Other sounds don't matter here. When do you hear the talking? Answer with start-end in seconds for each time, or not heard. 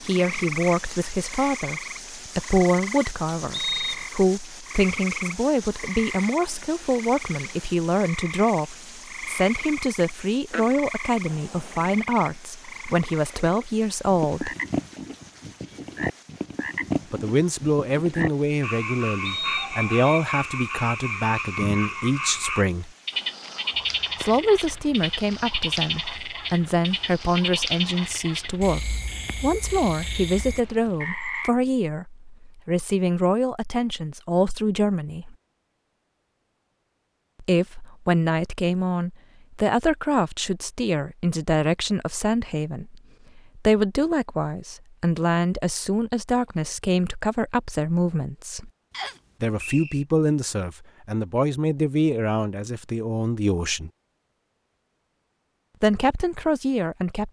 0.0-14.6, 17.1-22.9, 24.2-35.4, 37.4-48.7, 49.4-53.9, 55.8-57.2.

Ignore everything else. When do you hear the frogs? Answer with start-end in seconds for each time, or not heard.
0.0-31.5.